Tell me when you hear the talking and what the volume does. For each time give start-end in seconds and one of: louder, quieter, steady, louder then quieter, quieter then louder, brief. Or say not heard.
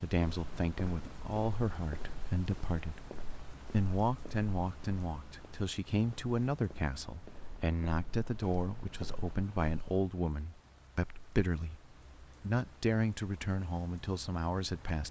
0.0-15.0 steady.